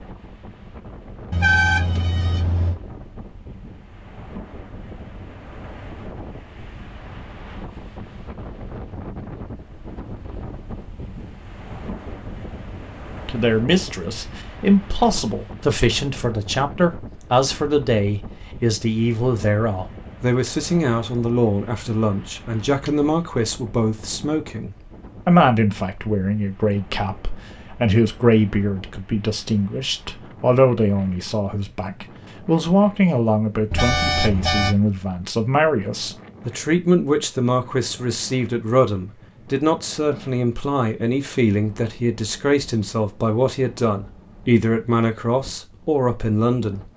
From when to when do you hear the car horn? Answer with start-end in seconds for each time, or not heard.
1.3-2.8, 22.6-23.1, 33.7-34.8.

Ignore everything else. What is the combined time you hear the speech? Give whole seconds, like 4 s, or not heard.
34 s.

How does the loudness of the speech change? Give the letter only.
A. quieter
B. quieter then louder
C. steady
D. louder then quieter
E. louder
C.